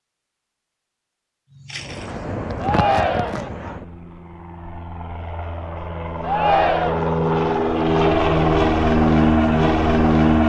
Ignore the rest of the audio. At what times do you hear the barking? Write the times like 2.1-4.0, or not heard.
1.6-3.8.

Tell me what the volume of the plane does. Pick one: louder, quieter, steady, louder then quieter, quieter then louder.
quieter then louder.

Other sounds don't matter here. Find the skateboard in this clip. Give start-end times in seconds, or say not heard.
not heard.